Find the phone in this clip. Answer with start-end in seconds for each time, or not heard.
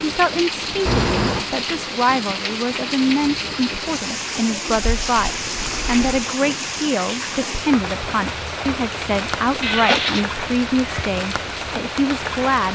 not heard.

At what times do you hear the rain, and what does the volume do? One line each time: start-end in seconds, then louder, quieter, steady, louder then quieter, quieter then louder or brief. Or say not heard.
0.0-12.7 steady.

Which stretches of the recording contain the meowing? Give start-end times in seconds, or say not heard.
0.8-1.4, 4.8-6.2, 9.6-10.2.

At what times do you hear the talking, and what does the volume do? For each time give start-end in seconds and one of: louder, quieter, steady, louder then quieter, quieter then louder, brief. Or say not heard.
0.0-12.7 steady.